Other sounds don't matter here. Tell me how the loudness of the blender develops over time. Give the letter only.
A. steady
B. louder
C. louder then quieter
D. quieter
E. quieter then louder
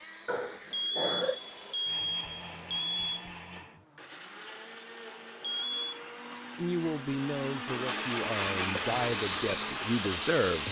B.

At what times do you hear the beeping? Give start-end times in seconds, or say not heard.
0.7-3.3, 5.4-6.0.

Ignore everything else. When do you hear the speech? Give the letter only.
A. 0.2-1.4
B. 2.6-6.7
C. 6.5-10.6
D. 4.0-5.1
C.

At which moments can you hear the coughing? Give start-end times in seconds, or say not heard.
0.2-1.4.